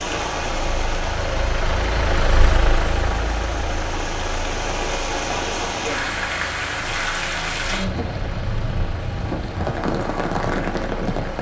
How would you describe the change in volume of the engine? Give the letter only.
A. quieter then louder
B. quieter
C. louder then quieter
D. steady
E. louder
B.